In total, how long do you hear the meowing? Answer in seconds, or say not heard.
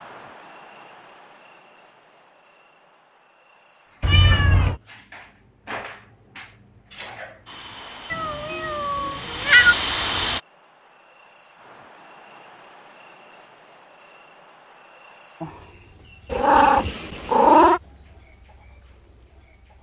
4 s.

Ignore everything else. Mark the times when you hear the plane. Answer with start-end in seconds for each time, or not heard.
7.5-10.4.